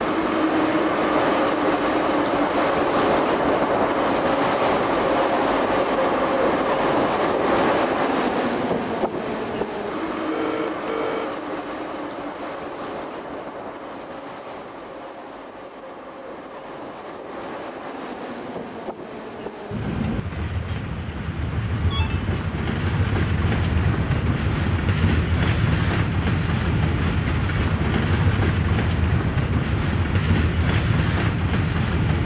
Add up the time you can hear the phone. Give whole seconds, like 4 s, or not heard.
2 s.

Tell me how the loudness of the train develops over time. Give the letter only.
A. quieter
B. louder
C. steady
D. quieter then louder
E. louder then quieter
D.